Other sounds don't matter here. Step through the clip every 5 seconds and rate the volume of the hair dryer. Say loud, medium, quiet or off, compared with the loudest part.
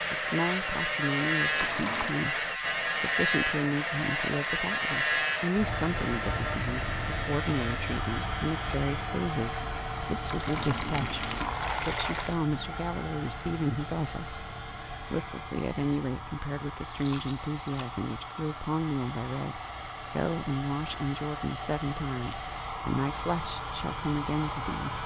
loud, loud, medium, medium, loud.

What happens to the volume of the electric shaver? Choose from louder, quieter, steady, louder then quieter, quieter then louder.
quieter.